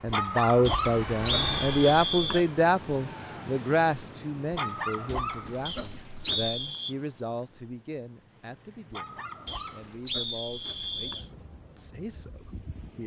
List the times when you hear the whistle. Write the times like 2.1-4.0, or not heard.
0.7-2.5, 5.7-7.0, 9.4-11.2.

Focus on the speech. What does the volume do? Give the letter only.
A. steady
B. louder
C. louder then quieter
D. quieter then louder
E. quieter
E.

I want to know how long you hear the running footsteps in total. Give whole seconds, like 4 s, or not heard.
not heard.